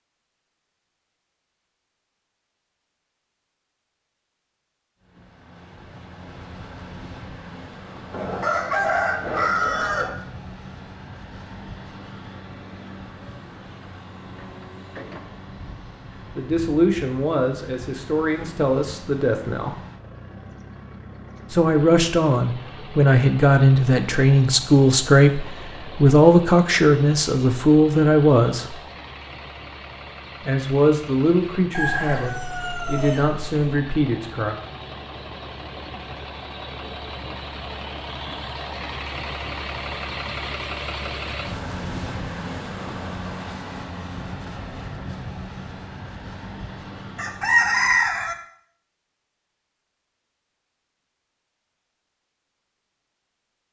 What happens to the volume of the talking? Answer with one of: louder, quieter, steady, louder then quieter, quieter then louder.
louder then quieter.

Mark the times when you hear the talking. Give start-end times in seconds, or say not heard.
16.4-19.8, 21.5-28.8, 30.4-34.5.